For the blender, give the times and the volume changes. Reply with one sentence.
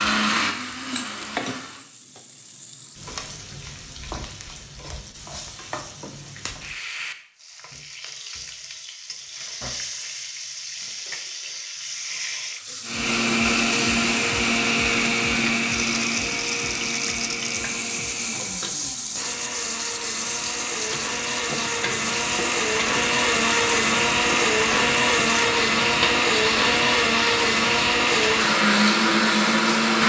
You can hear the blender briefly from 0.0 to 1.9 s; and from 12.8 to 30.0 s, getting quieter then louder.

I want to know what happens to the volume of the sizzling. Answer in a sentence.
The loudness of the sizzling goes up.